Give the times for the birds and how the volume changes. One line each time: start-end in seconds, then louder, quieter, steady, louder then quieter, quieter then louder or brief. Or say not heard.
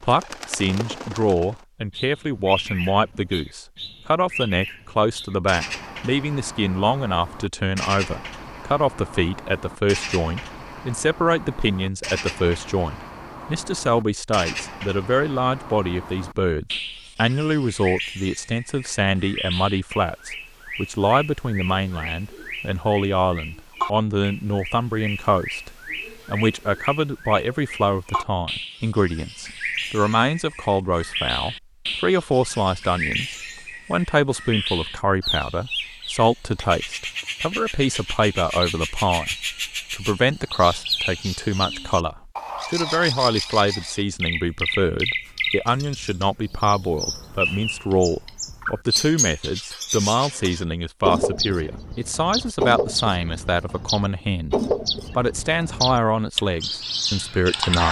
0.0-57.8 louder.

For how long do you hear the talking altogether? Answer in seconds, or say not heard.
58 s.